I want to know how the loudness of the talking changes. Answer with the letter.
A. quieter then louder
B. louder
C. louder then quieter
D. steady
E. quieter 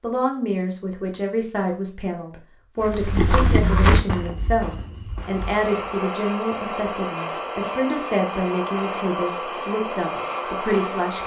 D.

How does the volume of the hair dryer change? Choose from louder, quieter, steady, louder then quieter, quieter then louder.
steady.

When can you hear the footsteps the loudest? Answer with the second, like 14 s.
4 s.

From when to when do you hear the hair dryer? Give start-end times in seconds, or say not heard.
5.2-11.2.